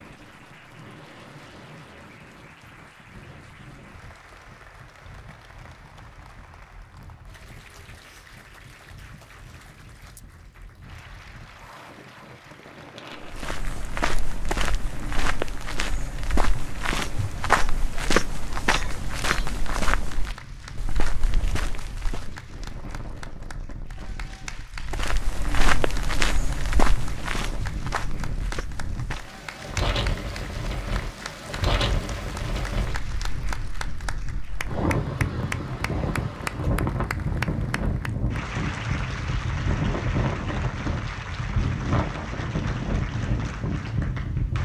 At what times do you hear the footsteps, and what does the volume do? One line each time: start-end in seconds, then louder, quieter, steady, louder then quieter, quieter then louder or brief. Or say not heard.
13.2-22.4 louder then quieter
24.9-29.4 quieter.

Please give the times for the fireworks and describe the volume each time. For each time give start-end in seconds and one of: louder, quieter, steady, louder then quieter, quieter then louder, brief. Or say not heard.
not heard.